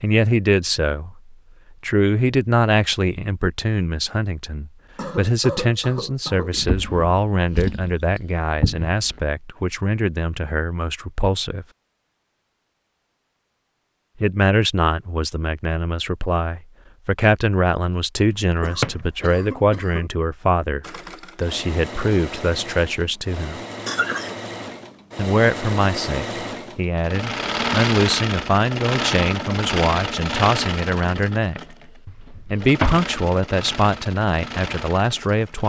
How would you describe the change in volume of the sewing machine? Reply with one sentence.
The loudness of the sewing machine goes up, then down.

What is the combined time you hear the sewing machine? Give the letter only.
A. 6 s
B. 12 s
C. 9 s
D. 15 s
D.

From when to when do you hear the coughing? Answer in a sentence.
The coughing can be heard from 5.0 to 6.6 s, from 18.6 to 20.1 s and from 23.9 to 24.4 s.